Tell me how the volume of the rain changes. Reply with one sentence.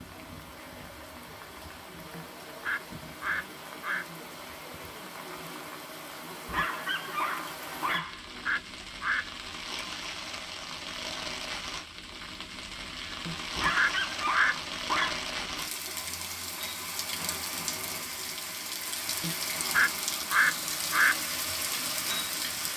The loudness of the rain goes up.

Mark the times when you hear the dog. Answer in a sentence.
The dog can be heard from 6.5 to 8.8 s and from 13.6 to 15.9 s.